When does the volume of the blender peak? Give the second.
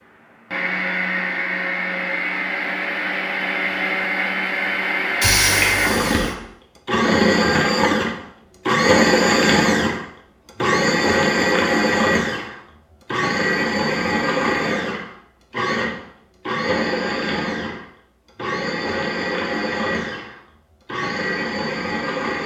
9 s.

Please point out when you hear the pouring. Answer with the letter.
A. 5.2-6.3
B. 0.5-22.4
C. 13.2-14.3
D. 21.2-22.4
A.